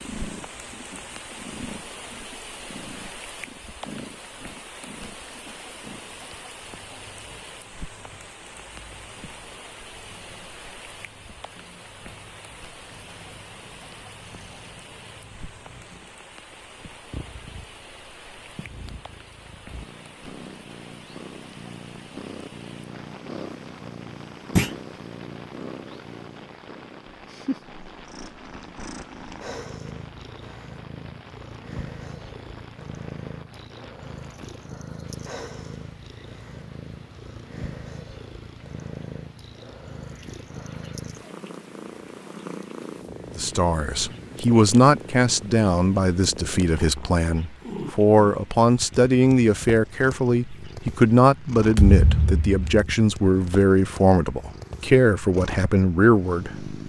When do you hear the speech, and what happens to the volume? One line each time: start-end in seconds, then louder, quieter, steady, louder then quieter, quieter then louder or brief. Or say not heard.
43.4-56.7 steady.